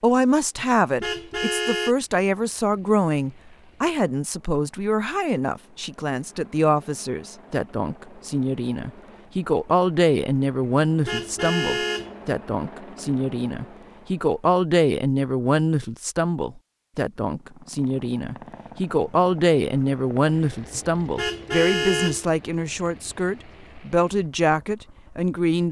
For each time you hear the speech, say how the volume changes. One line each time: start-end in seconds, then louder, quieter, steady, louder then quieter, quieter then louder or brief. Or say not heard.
0.0-25.6 steady.